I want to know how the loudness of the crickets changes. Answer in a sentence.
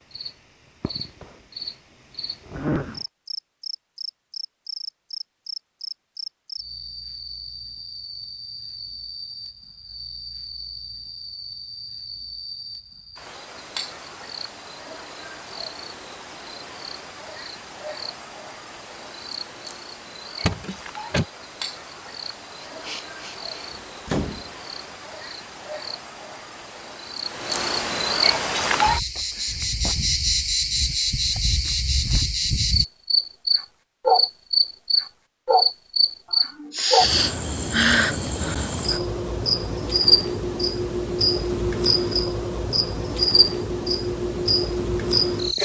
The volume of the crickets goes up.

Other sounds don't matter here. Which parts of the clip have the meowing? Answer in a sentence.
You can't hear the meowing here.